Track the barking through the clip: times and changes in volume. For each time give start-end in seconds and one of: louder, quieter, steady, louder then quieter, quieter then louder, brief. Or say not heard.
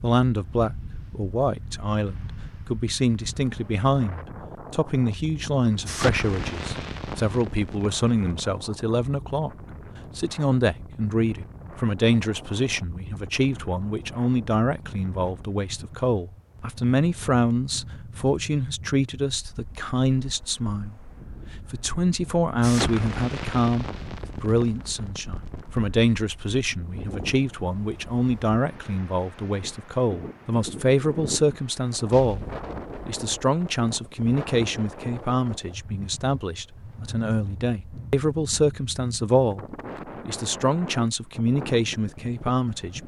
not heard.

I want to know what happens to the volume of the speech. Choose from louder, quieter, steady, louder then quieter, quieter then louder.
steady.